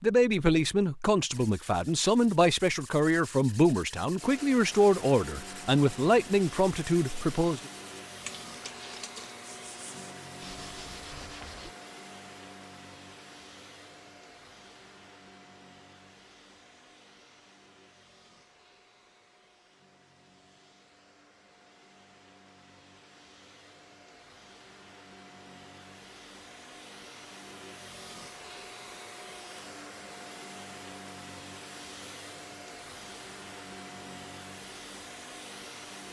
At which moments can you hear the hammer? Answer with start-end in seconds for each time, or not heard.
not heard.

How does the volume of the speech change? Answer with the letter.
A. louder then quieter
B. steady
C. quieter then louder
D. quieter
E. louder
B.